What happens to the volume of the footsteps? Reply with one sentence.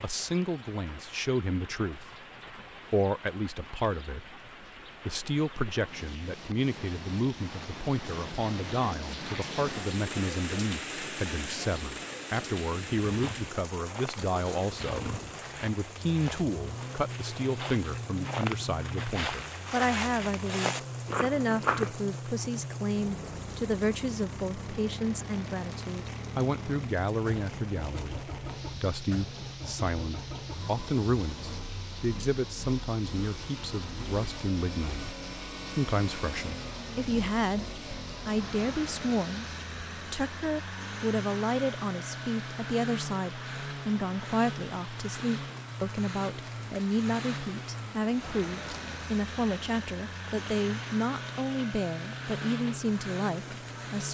The volume of the footsteps goes up.